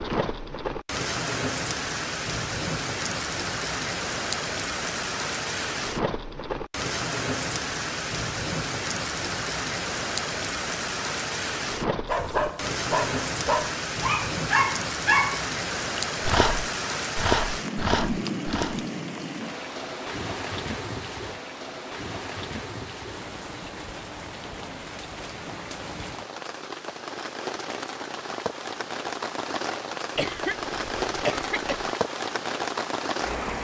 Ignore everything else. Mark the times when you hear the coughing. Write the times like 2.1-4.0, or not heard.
30.1-31.9.